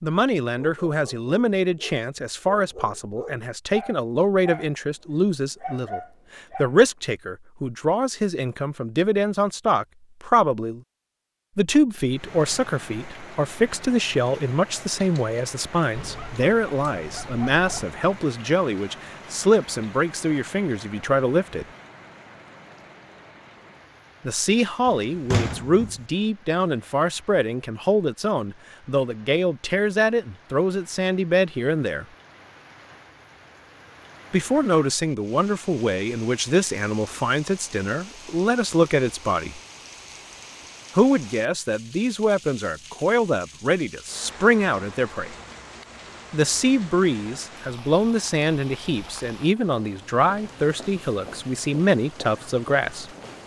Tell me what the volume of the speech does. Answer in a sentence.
The loudness of the speech stays about the same.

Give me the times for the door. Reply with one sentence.
The door can be heard from 24.9 to 26.0 s.